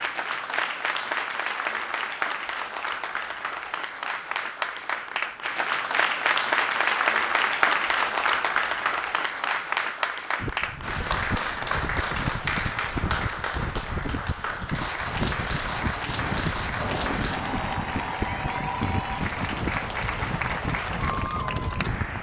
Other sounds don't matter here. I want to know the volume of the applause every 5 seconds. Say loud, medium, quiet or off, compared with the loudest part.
medium, loud, medium, medium, medium.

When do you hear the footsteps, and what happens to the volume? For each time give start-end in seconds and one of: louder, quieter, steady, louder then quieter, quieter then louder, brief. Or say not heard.
not heard.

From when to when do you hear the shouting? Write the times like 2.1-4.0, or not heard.
not heard.